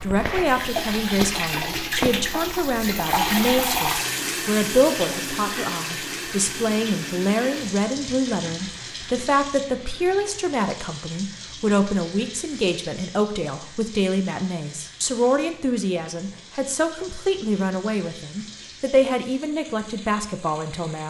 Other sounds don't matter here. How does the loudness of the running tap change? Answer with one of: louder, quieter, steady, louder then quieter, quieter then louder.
quieter.